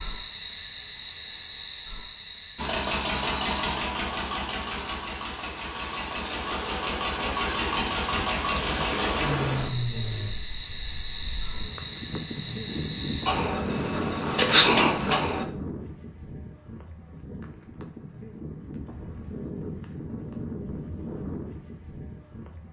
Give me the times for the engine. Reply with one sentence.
The engine can be heard from 2.5 to 10.3 s.